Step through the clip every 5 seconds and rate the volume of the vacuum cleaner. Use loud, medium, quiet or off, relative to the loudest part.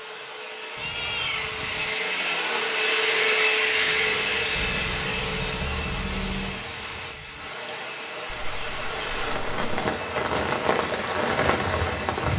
loud, medium, quiet.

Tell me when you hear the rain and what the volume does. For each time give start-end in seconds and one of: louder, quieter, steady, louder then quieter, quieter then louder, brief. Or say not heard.
3.5-12.3 louder.